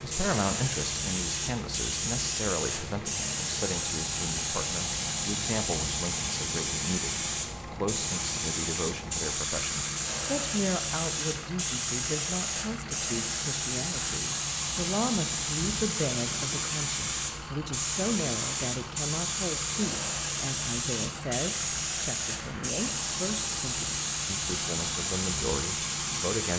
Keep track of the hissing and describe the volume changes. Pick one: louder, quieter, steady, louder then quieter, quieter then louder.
steady.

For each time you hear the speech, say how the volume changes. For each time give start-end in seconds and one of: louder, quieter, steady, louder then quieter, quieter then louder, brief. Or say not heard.
0.0-26.5 steady.